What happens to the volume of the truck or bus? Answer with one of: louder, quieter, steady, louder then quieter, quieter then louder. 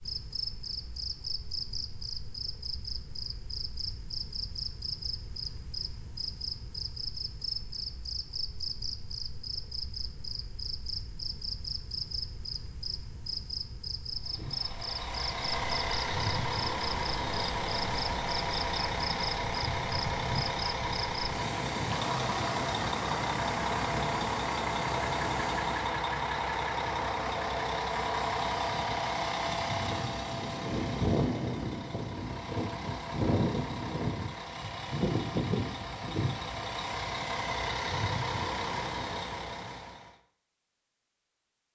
steady.